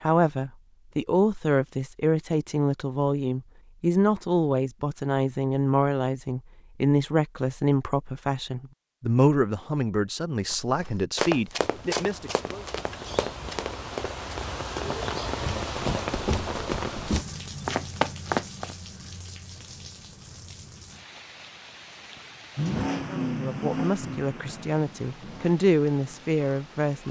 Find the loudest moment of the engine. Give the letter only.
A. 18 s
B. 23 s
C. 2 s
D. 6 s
B.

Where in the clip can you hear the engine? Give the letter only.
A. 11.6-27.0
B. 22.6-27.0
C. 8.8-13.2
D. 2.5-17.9
B.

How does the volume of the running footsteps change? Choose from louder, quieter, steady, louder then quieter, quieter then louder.
quieter then louder.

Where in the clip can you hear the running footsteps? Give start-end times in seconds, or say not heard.
10.5-18.8.